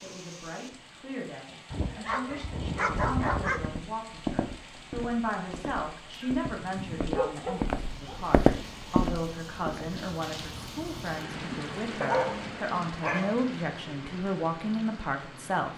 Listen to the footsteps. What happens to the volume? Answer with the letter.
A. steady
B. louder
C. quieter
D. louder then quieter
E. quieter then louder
E.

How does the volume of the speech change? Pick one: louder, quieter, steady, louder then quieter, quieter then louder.
louder.